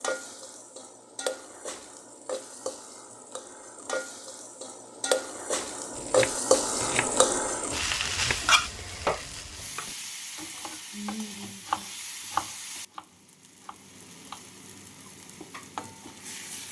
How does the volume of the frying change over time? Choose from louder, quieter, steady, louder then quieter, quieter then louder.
louder then quieter.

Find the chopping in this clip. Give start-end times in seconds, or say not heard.
6.0-14.4.